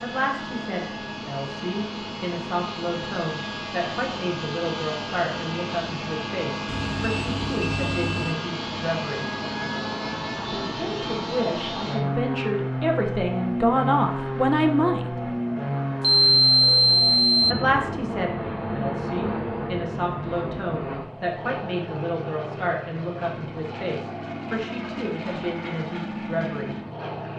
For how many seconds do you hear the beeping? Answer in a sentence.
The beeping can be heard for 3 seconds in total.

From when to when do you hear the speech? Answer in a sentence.
You can hear the speech from 0.0 to 9.2 s, from 10.3 to 15.1 s and from 17.5 to 26.8 s.